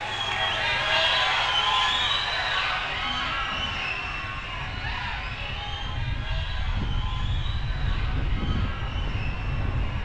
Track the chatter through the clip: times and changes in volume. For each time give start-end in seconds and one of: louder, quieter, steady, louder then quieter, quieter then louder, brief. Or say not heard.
0.0-10.0 quieter.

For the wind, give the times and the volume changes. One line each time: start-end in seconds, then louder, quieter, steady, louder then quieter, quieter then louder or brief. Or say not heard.
0.2-10.0 louder.